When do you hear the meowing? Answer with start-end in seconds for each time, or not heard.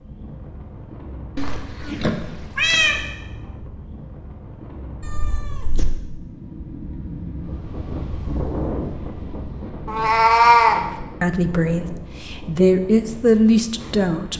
1.4-3.0, 5.0-5.8, 9.8-10.8.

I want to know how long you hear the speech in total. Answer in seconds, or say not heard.
3 s.